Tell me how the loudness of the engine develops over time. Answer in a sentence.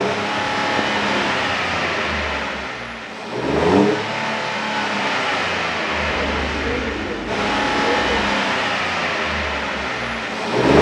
The loudness of the engine stays about the same.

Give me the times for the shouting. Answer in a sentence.
The shouting can't be heard in this clip.